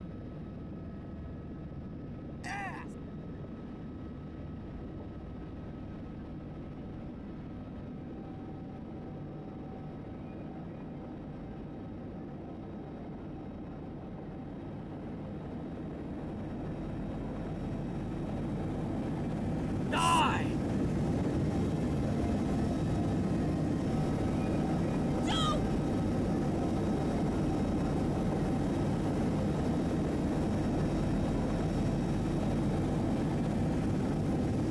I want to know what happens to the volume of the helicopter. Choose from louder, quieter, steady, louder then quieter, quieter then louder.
louder.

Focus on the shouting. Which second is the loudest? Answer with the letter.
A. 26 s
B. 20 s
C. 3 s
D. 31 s
B.